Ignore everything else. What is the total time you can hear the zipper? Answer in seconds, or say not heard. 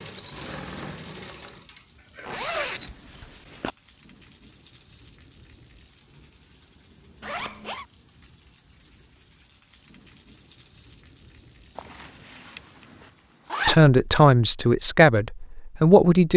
4 s.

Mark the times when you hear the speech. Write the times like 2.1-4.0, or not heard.
13.7-16.3.